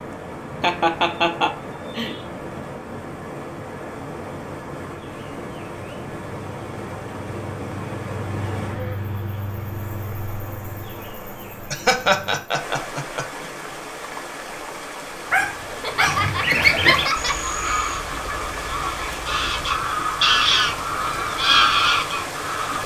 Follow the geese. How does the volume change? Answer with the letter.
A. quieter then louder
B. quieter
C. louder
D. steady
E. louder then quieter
A.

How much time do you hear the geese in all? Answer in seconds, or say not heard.
7 s.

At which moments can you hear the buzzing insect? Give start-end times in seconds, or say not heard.
0.0-12.4.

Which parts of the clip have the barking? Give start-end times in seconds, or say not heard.
15.3-16.3.